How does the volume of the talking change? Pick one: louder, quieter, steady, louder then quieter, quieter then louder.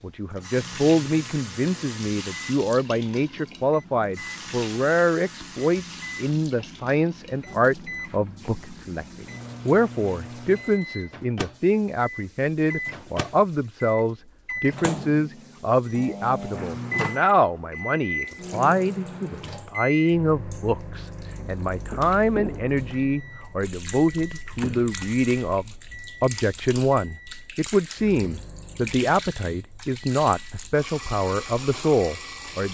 steady.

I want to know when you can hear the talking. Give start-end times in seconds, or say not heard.
0.0-32.7.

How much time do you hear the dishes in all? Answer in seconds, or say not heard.
not heard.